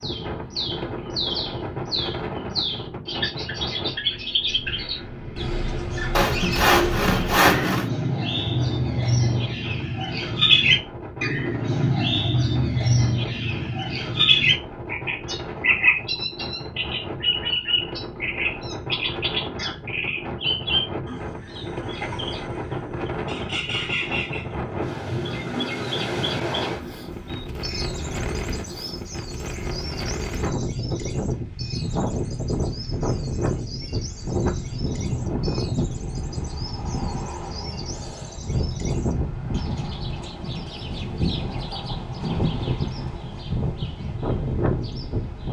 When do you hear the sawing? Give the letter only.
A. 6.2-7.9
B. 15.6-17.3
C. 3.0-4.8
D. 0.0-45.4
A.